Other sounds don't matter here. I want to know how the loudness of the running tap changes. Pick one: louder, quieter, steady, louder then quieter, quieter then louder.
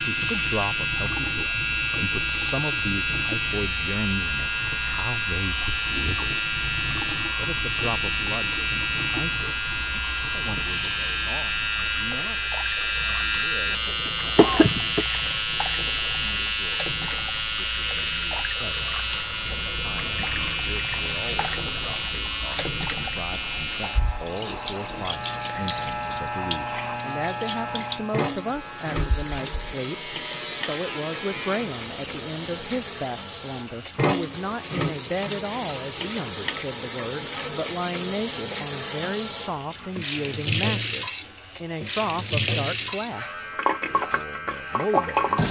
louder.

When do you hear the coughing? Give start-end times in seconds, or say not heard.
14.1-15.1.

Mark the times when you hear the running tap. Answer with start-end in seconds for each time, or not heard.
0.0-45.4.